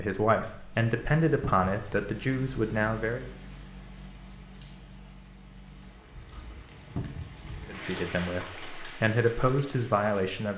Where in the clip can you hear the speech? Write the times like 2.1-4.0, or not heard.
0.0-3.3, 7.7-10.5.